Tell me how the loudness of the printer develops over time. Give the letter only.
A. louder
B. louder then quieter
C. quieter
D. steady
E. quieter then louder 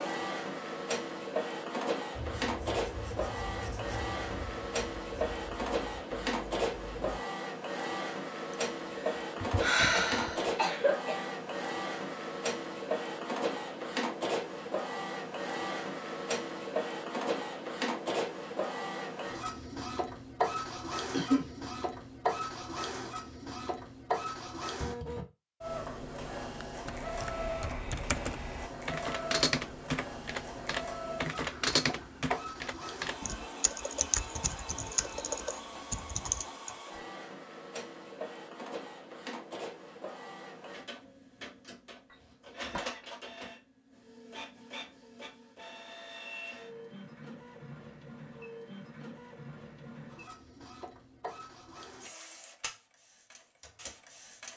C.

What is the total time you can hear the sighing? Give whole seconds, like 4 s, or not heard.
2 s.